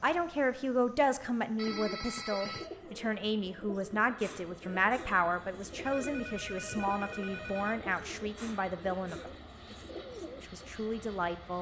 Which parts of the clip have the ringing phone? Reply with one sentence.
The ringing phone can be heard from 1.6 to 2.7 s and from 5.8 to 7.8 s.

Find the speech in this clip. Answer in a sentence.
The speech can be heard from 0.0 to 9.3 s and from 10.4 to 11.5 s.